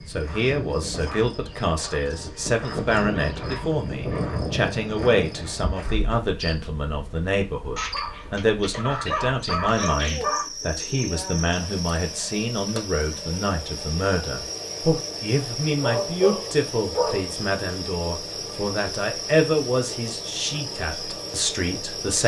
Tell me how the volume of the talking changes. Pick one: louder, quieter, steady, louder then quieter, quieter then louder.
steady.